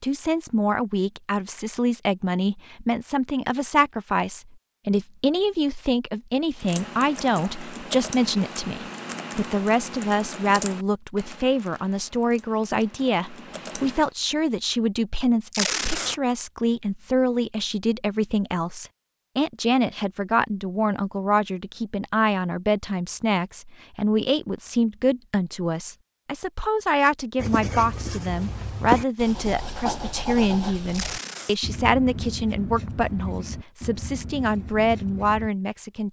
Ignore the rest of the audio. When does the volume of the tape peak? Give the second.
16 s.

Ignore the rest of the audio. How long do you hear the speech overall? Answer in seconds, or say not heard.
36 s.